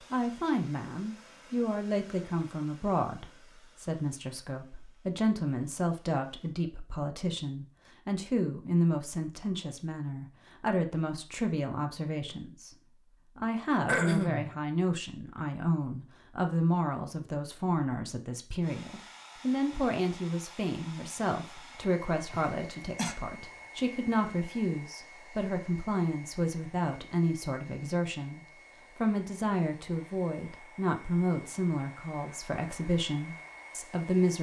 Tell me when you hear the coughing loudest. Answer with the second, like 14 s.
14 s.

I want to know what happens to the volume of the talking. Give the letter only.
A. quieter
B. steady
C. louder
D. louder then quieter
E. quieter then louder
B.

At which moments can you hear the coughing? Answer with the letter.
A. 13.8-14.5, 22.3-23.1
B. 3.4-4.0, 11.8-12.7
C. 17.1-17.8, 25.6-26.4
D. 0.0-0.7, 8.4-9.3
A.